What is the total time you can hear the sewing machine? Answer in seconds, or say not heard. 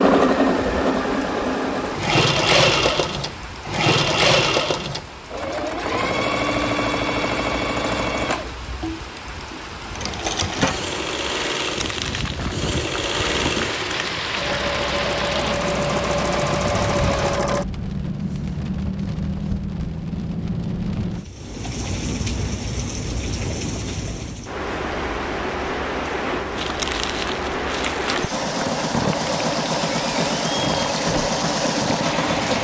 22 s.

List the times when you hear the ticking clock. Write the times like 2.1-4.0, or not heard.
not heard.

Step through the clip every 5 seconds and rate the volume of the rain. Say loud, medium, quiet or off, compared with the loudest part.
medium, medium, loud, loud, loud, loud, loud.